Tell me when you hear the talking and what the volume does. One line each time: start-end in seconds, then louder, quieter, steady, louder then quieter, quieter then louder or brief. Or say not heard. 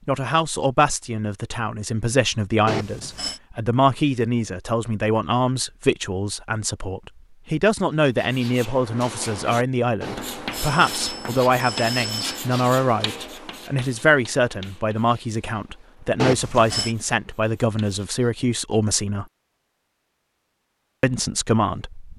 0.1-19.2 steady
21.0-22.1 brief.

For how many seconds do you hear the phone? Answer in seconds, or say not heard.
4 s.